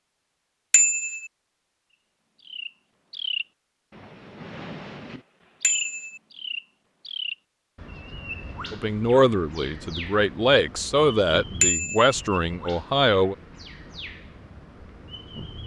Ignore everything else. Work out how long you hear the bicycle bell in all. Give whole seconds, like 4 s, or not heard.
2 s.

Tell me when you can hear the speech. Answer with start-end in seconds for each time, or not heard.
8.7-13.3.